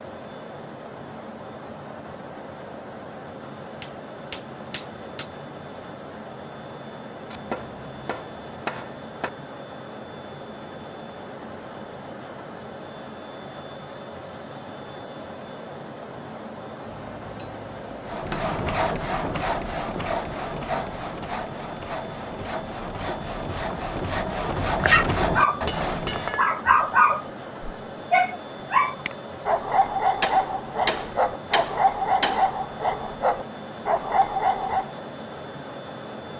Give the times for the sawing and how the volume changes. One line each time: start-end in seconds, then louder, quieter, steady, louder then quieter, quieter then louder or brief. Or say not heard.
18.1-26.4 quieter then louder.